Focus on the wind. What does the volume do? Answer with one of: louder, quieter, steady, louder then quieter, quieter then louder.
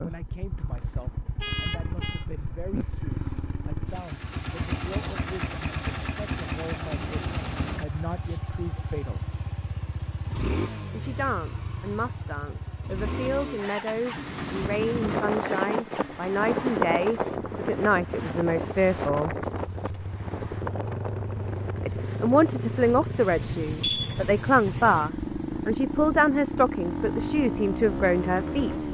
quieter.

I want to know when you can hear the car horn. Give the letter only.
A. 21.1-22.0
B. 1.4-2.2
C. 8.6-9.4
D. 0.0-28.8
B.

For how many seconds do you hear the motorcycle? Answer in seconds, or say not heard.
29 s.